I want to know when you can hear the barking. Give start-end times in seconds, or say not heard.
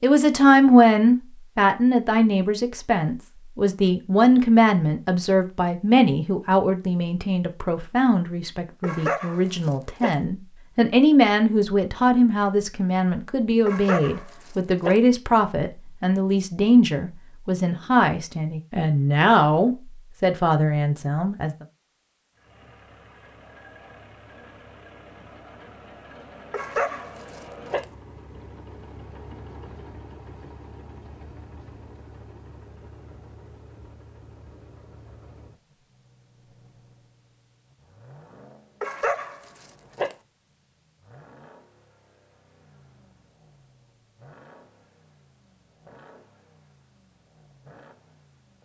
8.8-10.2, 13.7-15.0, 26.5-27.9, 38.8-40.1.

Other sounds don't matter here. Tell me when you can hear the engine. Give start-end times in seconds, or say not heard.
22.4-48.5.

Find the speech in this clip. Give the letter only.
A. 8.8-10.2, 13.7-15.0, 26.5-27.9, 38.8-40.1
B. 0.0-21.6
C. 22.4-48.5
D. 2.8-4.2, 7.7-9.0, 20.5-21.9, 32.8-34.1
B.